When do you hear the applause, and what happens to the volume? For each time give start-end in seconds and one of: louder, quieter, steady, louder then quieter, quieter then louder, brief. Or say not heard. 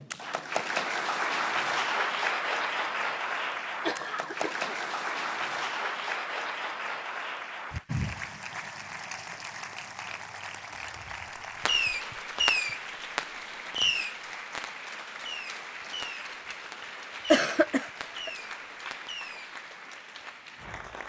0.0-21.0 quieter.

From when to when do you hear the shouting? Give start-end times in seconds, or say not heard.
not heard.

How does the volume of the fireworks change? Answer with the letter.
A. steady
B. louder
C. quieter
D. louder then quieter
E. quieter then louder
C.